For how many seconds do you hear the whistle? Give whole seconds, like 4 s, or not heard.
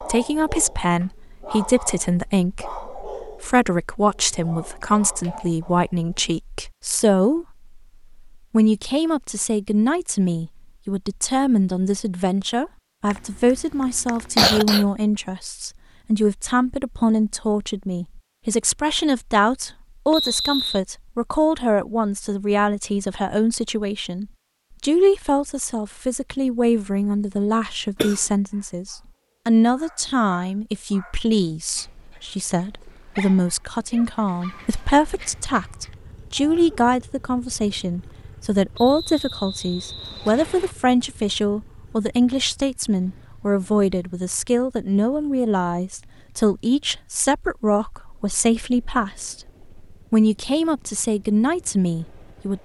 3 s.